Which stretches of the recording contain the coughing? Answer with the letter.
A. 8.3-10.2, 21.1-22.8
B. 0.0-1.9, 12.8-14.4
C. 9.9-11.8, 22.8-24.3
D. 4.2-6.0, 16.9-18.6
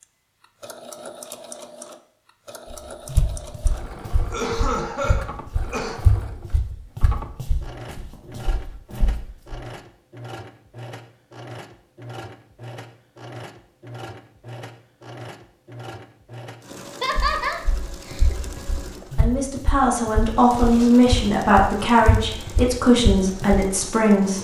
D.